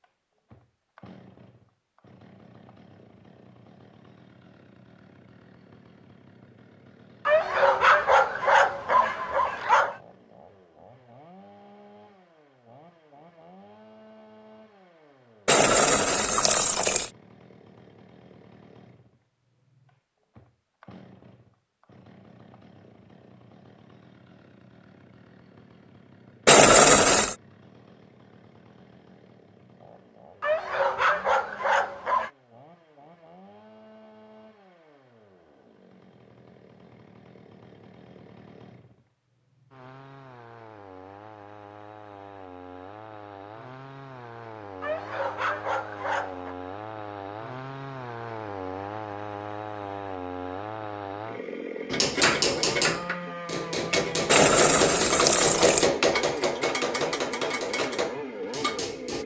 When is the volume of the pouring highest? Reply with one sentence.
The volume of the pouring peaks at 27 seconds.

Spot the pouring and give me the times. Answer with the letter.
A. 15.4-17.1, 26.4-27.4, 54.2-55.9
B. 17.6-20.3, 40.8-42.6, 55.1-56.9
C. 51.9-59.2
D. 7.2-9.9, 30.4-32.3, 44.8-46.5
A.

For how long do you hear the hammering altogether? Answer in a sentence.
You can hear the hammering for 7 seconds altogether.